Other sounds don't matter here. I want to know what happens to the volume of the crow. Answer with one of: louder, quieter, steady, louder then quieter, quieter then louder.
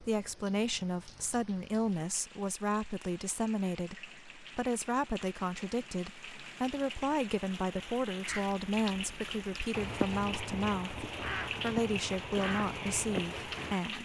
louder.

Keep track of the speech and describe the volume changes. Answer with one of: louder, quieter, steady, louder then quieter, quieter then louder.
steady.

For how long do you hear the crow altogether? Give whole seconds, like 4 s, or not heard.
6 s.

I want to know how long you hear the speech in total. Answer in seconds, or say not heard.
14 s.